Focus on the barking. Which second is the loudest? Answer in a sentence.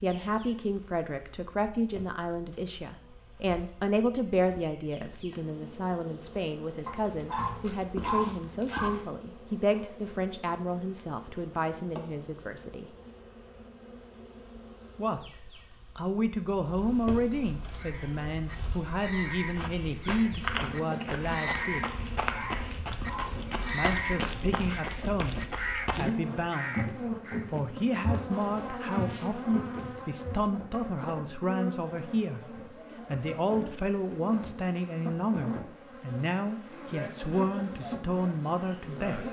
The volume of the barking peaks at 8 seconds.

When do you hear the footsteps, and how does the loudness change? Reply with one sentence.
You can hear the footsteps from 19.4 to 30.5 s, at a steady volume.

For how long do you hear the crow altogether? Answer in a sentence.
You can hear the crow for 10 seconds altogether.